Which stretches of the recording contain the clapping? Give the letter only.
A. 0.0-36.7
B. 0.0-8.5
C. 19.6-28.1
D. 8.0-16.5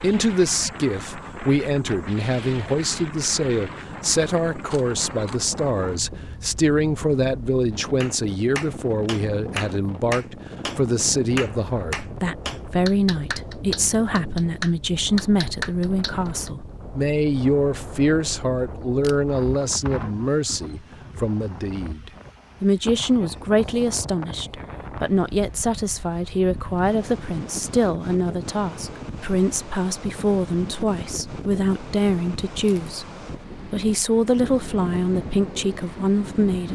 D.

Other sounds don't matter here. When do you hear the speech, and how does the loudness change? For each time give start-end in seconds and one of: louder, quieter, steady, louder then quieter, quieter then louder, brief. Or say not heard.
0.0-36.7 steady.